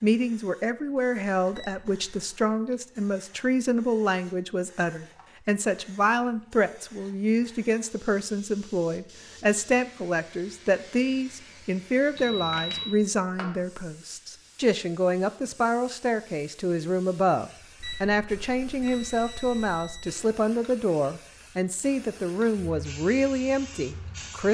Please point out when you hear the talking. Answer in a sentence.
You can hear the talking from 0.0 to 24.5 s.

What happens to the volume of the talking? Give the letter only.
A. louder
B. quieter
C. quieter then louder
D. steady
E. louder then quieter
D.